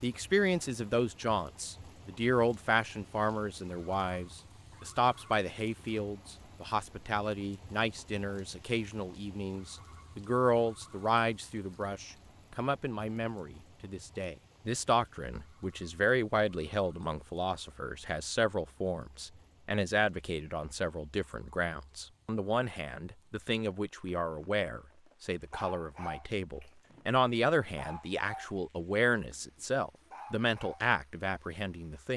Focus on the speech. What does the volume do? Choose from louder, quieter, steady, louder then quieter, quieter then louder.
steady.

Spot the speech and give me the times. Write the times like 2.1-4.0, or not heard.
0.0-32.1.